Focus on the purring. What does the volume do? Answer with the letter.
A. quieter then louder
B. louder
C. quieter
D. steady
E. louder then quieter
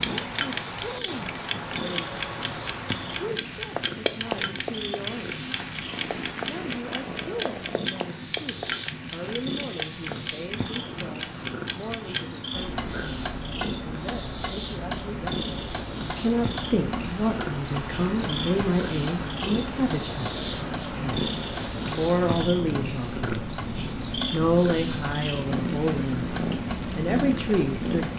B.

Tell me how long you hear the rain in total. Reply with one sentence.
You can hear the rain for 28 seconds altogether.